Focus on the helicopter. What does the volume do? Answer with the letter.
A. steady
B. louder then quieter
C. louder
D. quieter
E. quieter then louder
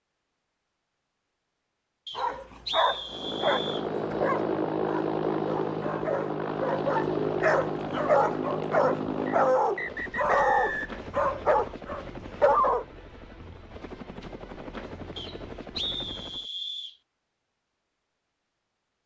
D.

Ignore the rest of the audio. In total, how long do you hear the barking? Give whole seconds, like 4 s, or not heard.
11 s.